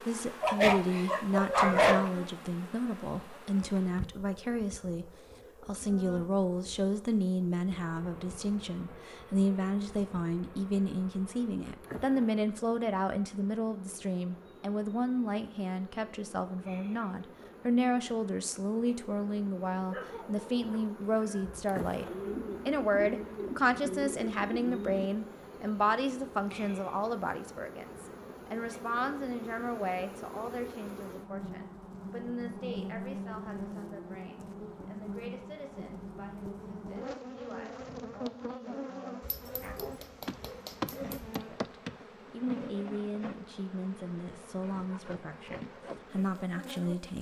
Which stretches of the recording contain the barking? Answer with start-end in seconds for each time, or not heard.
0.4-2.1, 19.9-21.6, 39.2-41.4.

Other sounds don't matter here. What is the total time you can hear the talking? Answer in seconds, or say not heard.
45 s.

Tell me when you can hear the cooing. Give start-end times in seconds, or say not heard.
22.0-25.1.